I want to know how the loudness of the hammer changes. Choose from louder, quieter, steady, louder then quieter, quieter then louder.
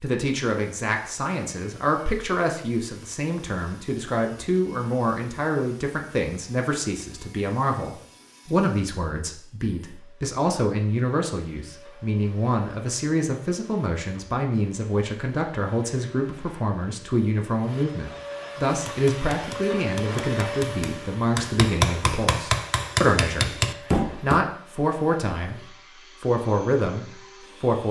louder.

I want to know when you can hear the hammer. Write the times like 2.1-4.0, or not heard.
18.6-24.4.